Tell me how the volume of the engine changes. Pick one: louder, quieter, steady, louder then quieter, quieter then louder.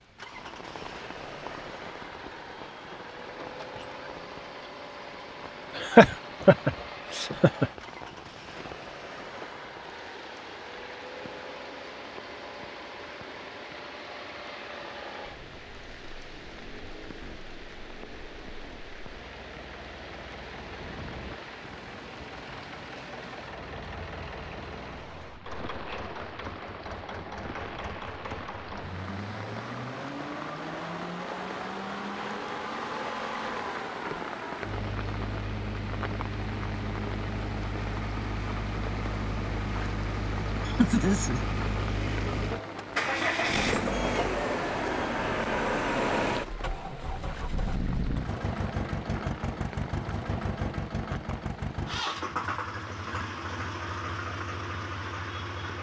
louder.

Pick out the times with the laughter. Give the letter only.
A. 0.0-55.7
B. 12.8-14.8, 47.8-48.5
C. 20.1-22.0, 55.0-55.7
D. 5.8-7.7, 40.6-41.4
D.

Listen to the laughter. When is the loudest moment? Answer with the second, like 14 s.
6 s.